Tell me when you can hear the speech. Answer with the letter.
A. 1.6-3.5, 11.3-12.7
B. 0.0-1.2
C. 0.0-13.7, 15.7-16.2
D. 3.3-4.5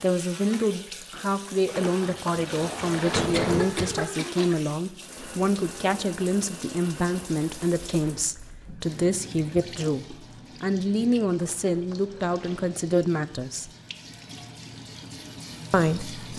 C.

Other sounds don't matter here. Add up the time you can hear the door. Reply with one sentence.
The door can be heard for 3 seconds in total.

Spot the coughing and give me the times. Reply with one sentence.
You can hear the coughing from 3.3 to 4.5 s.